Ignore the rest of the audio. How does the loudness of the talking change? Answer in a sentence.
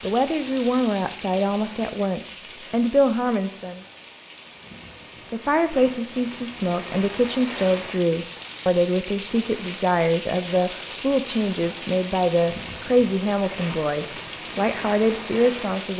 The volume of the talking stays about the same.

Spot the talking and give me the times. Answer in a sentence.
The talking can be heard from 0.0 to 3.8 s and from 5.3 to 15.9 s.